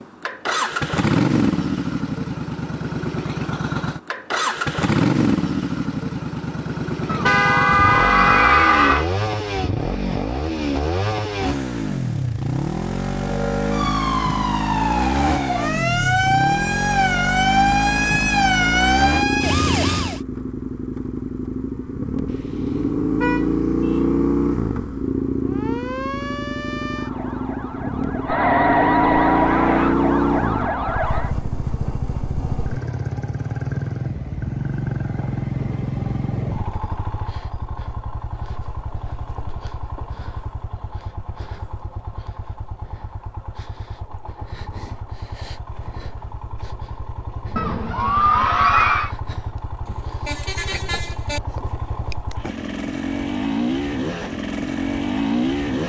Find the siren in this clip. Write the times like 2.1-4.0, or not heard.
13.2-20.2, 25.4-31.4.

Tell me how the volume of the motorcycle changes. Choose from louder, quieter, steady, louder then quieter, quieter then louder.
quieter.